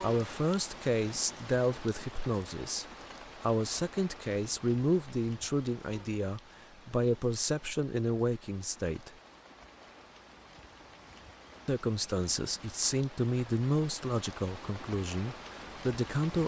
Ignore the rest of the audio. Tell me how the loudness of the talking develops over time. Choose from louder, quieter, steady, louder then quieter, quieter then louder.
steady.